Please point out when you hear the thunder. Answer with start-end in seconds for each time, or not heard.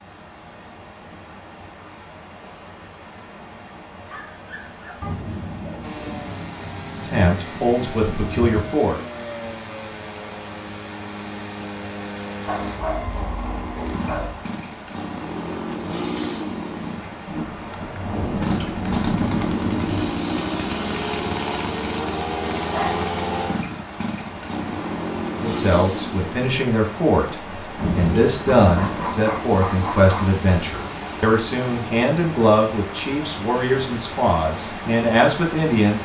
5.0-8.8, 17.2-20.2, 27.8-29.1.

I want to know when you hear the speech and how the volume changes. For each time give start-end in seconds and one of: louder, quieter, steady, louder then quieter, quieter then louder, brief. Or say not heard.
7.0-9.0 brief
25.4-36.0 steady.